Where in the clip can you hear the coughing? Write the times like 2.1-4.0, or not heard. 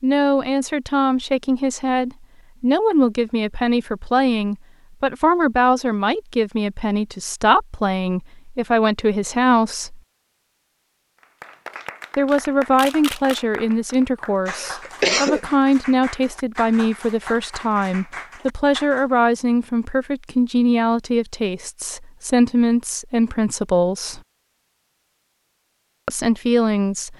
14.4-15.4.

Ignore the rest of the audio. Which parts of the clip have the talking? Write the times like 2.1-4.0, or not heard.
0.0-10.0, 12.2-24.2, 26.1-27.1.